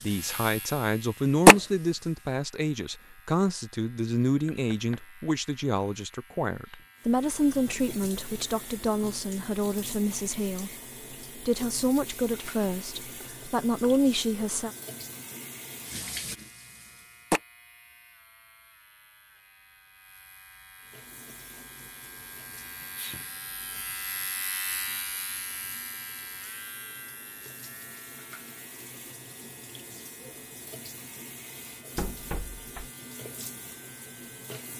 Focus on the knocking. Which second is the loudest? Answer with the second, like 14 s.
32 s.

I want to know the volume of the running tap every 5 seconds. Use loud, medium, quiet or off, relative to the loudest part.
loud, quiet, quiet, quiet, quiet, quiet, quiet.